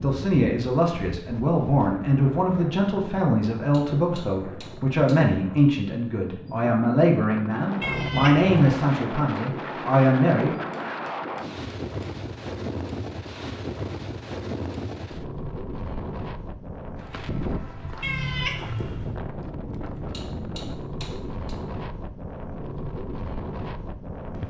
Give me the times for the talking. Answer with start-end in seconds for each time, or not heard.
0.0-10.6.